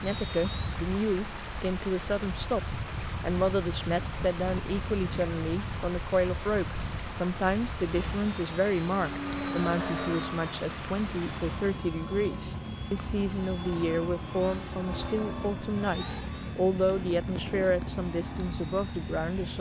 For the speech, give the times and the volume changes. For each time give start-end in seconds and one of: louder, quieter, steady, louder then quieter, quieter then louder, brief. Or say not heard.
0.0-19.5 steady.